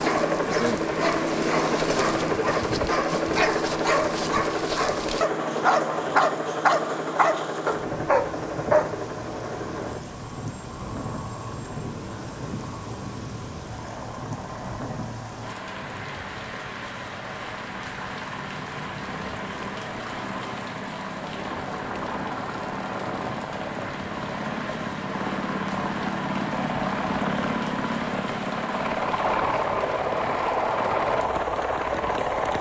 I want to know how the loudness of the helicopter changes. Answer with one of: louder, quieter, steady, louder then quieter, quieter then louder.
quieter then louder.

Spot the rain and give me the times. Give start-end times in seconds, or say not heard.
5.1-32.5.